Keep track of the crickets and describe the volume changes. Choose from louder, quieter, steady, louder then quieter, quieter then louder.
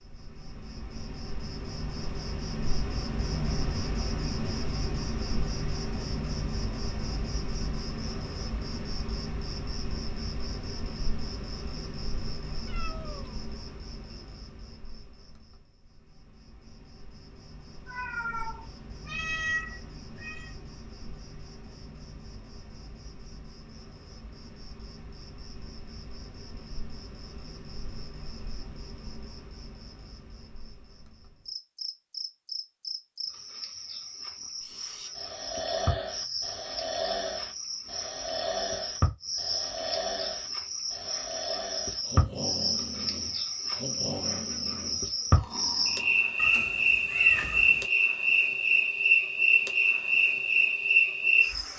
quieter then louder.